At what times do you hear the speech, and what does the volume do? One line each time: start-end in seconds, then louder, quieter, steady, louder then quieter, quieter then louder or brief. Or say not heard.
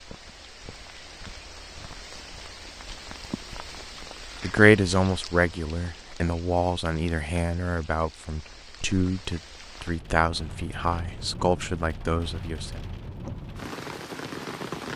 4.4-12.8 steady.